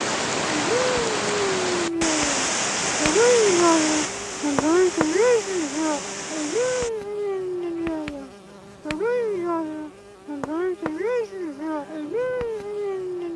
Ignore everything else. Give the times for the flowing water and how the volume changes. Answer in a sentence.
The flowing water can be heard from 0.0 to 6.9 s, getting quieter.